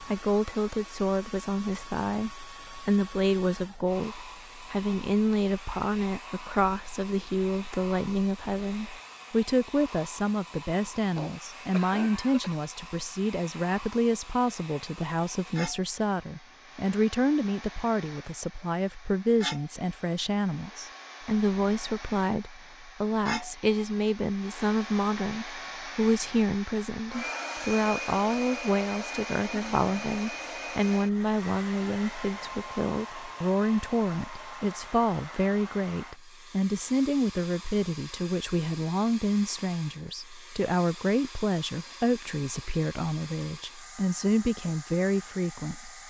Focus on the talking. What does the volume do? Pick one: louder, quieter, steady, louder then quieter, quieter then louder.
steady.